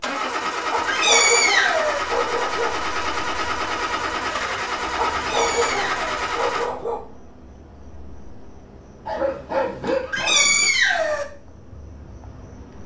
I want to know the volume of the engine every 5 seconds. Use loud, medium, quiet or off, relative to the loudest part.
loud, loud, off.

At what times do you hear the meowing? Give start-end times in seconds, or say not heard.
0.8-2.0, 5.2-6.1, 10.1-11.2.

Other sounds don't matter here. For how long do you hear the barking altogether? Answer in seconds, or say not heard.
6 s.